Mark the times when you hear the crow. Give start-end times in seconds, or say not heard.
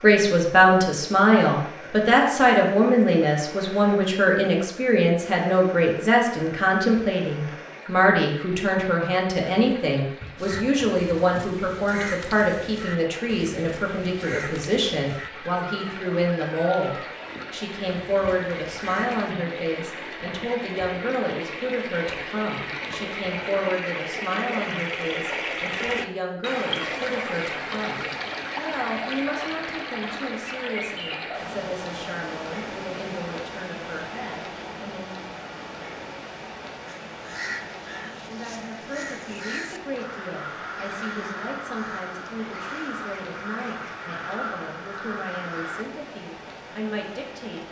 10.3-19.4, 37.1-45.9.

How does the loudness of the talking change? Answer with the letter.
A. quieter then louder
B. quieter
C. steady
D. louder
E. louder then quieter
B.